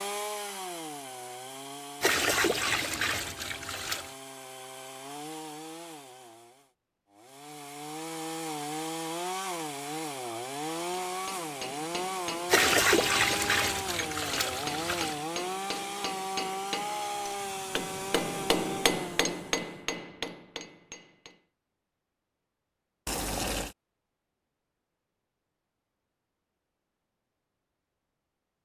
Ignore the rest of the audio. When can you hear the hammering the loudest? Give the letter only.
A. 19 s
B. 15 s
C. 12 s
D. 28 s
A.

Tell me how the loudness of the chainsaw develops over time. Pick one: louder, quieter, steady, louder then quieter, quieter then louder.
louder.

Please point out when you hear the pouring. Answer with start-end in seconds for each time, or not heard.
2.0-4.1, 12.4-15.2, 23.1-23.8.